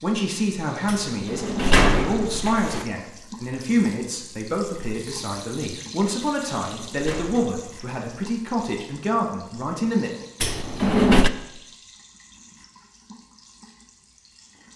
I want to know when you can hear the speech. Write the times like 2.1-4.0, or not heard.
0.0-10.1.